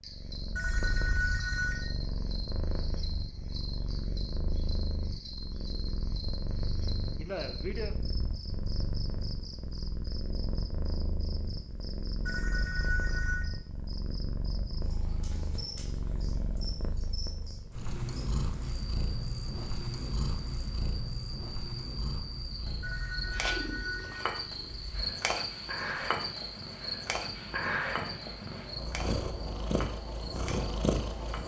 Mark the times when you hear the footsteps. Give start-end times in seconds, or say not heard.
not heard.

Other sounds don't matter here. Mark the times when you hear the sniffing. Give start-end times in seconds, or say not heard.
7.2-8.0.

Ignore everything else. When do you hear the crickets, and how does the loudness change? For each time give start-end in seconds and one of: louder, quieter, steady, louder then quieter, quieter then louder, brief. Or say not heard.
0.0-31.4 louder.